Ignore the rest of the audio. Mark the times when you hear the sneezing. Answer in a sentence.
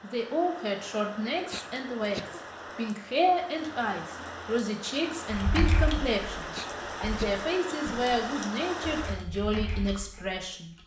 You can hear the sneezing from 1.4 to 2.4 s and from 6.4 to 7.5 s.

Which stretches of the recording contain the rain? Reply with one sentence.
You can hear the rain from 0.0 to 9.2 s.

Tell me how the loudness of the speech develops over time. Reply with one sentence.
The loudness of the speech stays about the same.